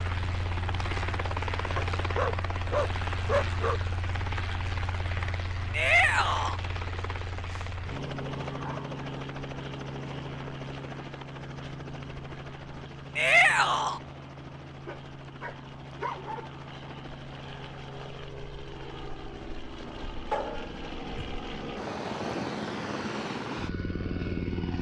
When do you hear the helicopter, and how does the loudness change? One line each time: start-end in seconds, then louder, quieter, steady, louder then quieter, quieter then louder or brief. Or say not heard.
0.0-24.7 quieter then louder.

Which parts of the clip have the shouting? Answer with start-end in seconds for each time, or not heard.
5.7-6.6, 13.2-14.0.